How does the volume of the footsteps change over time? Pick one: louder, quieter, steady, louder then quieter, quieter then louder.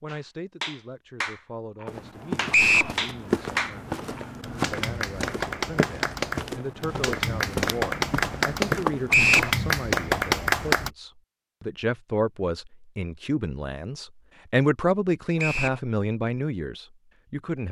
quieter then louder.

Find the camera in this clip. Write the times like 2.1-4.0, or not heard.
not heard.